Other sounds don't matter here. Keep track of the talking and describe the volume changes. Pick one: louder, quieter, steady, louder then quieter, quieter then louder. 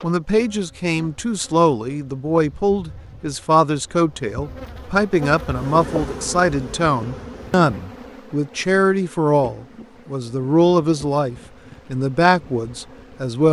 steady.